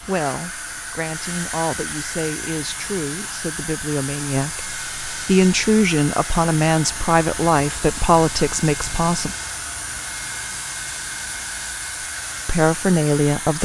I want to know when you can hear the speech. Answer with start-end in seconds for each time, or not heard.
0.1-9.3, 12.4-13.6.